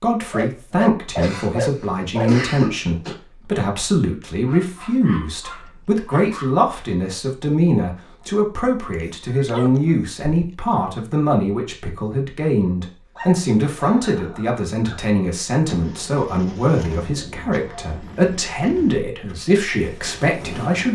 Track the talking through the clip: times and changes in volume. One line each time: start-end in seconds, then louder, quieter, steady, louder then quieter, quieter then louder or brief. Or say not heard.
0.0-20.9 steady.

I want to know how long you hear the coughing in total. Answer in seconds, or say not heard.
2 s.